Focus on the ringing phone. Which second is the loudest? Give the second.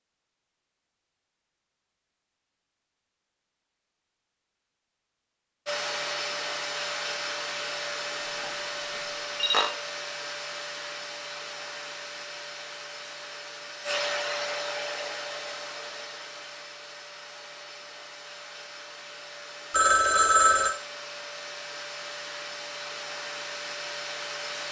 20 s.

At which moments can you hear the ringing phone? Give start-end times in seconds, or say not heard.
8.9-9.7, 19.7-20.8.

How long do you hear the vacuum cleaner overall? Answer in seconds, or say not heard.
19 s.